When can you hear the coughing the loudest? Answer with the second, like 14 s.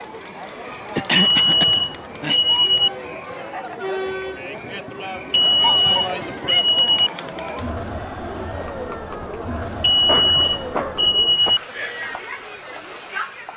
1 s.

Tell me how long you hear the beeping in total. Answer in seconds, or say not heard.
5 s.